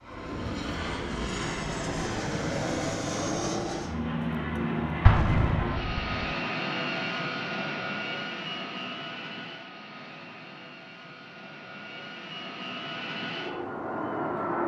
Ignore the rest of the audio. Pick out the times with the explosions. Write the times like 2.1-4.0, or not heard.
5.0-6.2.